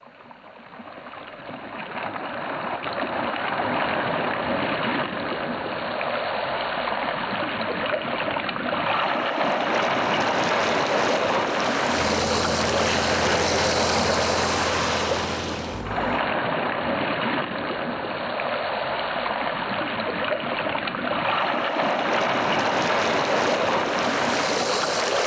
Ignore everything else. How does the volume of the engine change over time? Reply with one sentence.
The loudness of the engine stays about the same.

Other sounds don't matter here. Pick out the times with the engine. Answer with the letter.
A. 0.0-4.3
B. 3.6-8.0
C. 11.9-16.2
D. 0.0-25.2
C.